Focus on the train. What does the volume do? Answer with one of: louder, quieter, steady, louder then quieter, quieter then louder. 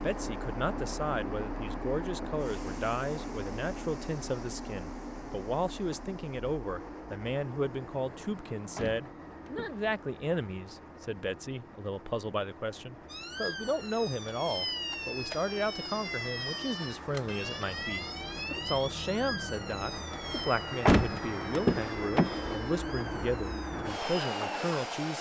quieter then louder.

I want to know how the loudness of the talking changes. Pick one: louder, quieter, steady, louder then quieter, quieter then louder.
steady.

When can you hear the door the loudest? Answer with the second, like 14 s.
21 s.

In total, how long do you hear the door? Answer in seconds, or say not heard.
3 s.